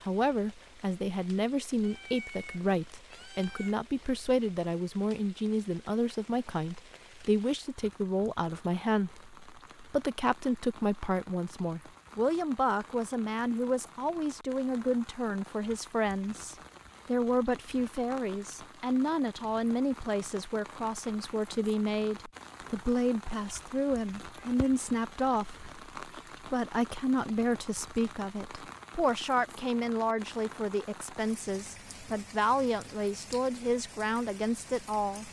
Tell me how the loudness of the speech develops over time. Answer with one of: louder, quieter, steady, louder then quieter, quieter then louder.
steady.